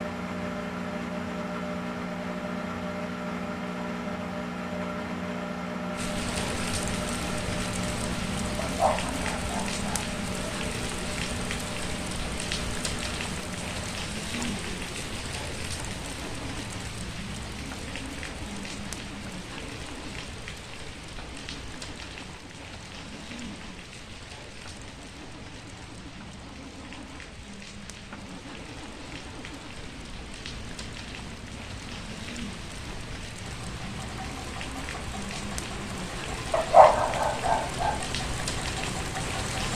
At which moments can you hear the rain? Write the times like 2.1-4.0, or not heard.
5.9-39.6.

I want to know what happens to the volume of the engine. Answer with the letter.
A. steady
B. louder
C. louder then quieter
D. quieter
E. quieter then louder
E.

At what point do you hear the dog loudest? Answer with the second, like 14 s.
37 s.